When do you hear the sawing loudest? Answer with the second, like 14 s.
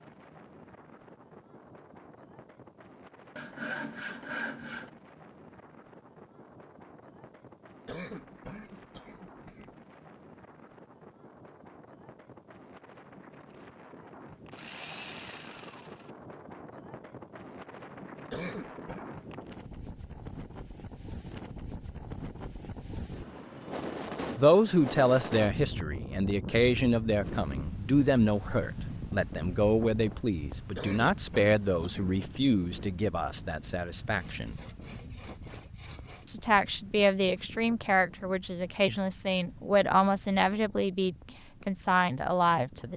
4 s.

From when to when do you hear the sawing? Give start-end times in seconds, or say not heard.
3.4-4.9, 14.5-16.1, 34.0-36.2.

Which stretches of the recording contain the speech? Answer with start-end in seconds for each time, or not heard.
24.4-34.5, 36.2-42.9.